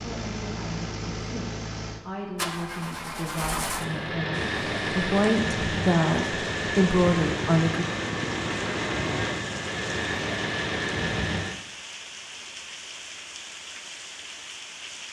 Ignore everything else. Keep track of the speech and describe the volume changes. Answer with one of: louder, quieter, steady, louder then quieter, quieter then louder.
louder.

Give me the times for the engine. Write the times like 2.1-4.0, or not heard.
0.0-11.7.